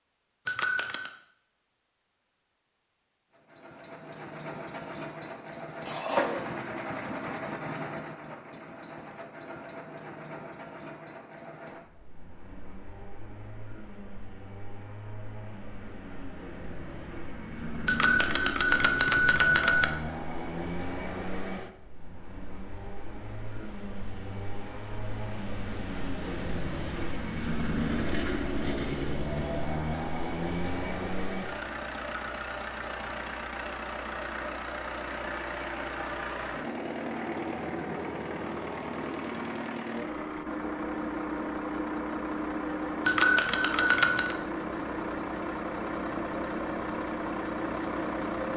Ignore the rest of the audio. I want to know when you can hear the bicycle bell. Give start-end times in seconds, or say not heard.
0.5-1.1, 17.9-19.9, 43.0-44.4.